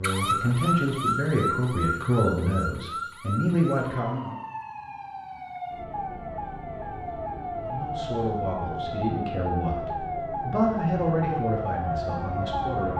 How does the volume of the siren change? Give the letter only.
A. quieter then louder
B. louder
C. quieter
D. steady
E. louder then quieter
A.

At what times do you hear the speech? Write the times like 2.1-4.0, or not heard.
0.0-4.3, 7.5-12.9.